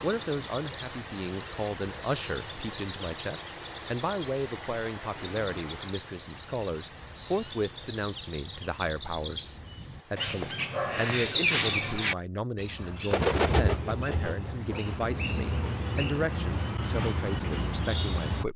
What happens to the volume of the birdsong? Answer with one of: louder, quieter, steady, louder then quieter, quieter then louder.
louder.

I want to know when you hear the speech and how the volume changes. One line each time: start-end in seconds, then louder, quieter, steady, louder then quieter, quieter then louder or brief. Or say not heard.
0.0-18.5 steady.